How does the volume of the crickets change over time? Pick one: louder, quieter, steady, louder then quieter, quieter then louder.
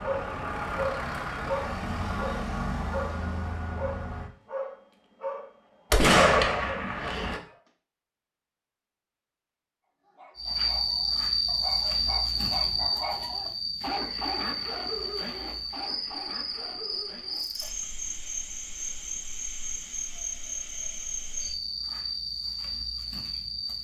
quieter.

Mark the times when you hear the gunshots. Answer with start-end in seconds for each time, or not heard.
5.9-7.4.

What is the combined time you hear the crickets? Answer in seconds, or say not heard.
13 s.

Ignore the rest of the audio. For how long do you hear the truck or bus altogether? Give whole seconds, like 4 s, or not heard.
4 s.